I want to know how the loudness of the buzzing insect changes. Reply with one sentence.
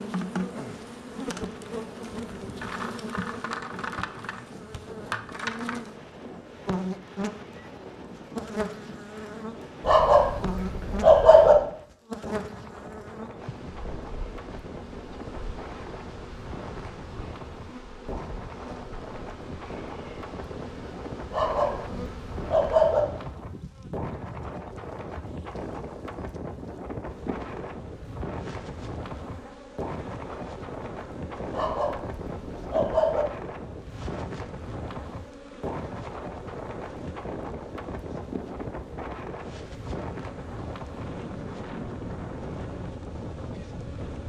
The loudness of the buzzing insect goes down.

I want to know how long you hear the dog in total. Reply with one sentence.
The dog can be heard for 5 seconds in total.